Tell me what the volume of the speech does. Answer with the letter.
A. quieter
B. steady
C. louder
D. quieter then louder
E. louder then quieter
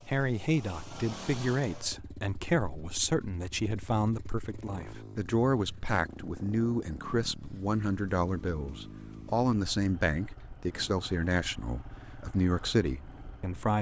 B.